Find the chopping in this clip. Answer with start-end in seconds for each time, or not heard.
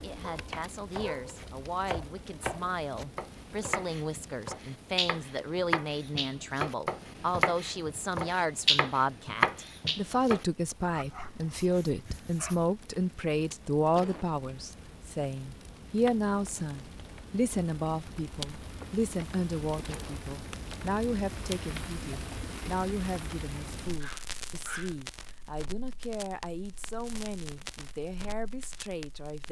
0.5-10.4.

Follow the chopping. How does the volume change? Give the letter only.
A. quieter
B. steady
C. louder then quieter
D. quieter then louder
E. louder
E.